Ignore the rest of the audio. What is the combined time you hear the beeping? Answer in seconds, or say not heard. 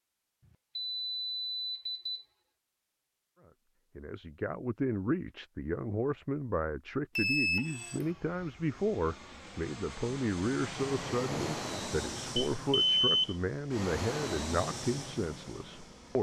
3 s.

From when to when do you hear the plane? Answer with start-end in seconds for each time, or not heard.
7.6-16.1.